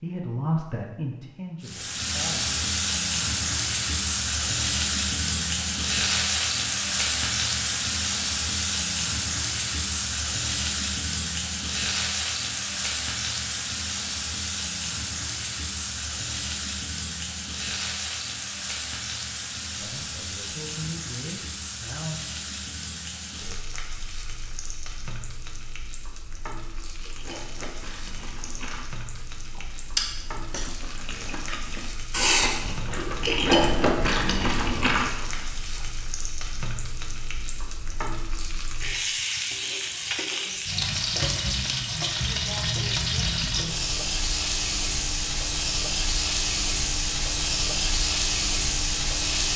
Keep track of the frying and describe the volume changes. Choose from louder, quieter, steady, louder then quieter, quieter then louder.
quieter then louder.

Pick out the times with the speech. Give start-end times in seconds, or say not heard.
0.0-2.6, 19.8-22.2.